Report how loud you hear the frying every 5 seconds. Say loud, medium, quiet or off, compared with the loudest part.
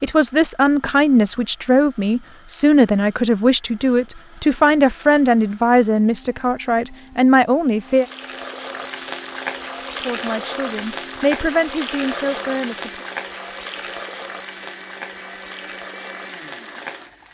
off, loud, loud, medium.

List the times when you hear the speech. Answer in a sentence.
You can hear the speech from 0.0 to 8.1 s and from 9.9 to 13.1 s.